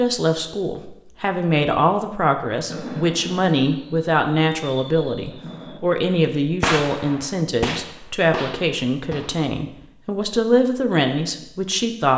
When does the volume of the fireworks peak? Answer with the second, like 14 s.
7 s.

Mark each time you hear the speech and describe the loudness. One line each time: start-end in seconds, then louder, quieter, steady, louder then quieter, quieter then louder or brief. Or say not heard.
0.0-12.1 steady.